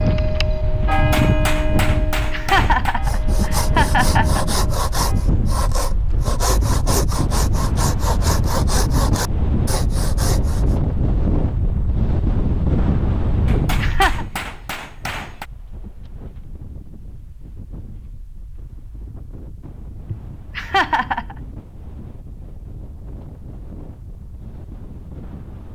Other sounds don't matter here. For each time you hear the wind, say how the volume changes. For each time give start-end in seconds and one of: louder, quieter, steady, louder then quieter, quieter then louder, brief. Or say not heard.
0.0-25.7 quieter.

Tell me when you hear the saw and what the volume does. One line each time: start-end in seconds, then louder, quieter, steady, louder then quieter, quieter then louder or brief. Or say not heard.
3.0-10.8 steady.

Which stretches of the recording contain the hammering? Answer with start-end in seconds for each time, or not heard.
0.9-3.0, 13.4-15.4.